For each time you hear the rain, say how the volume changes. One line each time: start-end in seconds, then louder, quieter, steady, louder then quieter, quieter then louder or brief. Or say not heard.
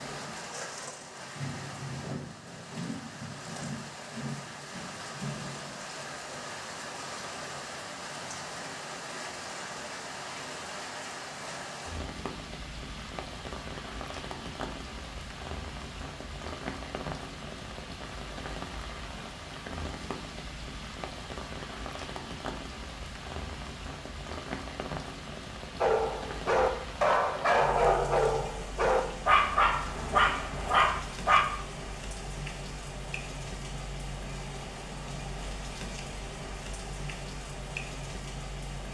0.0-38.8 steady.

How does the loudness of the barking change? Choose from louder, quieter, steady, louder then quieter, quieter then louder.
steady.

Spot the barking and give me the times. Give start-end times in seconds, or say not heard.
25.8-31.4.